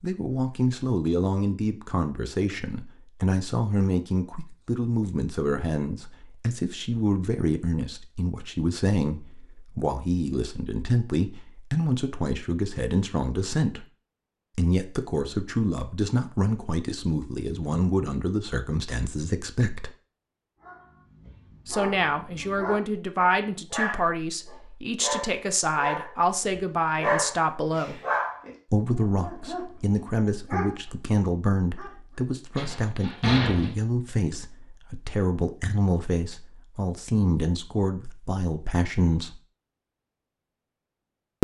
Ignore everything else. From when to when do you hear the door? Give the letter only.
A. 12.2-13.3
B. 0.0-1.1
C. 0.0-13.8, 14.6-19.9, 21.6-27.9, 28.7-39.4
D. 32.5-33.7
D.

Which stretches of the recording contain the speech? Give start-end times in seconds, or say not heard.
0.0-13.8, 14.6-19.9, 21.6-27.9, 28.7-39.4.